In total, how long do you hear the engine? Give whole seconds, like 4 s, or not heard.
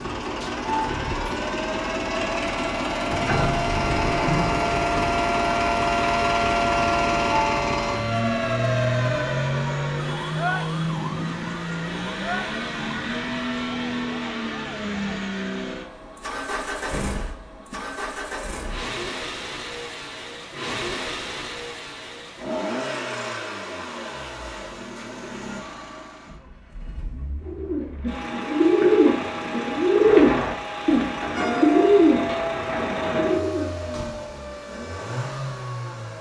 36 s.